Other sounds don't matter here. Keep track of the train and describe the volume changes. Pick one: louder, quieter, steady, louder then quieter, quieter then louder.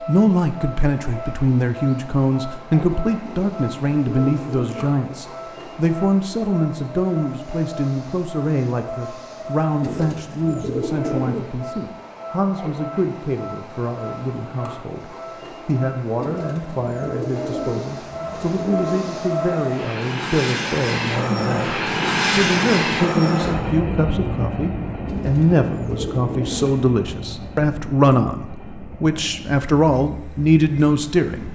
louder then quieter.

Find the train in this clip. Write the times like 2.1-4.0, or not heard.
0.0-31.5.